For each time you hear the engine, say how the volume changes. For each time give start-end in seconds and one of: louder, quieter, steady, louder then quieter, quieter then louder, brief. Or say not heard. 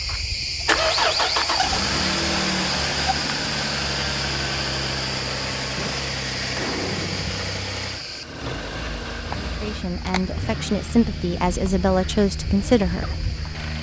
0.0-13.7 quieter.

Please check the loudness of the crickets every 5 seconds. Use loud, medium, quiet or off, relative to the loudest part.
loud, medium, medium.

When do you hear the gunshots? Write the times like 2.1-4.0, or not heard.
5.8-7.7.